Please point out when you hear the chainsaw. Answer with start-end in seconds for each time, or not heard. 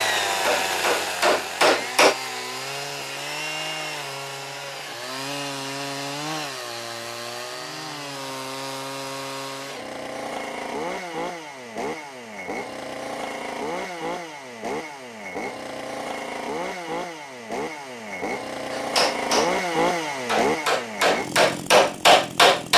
0.0-22.7.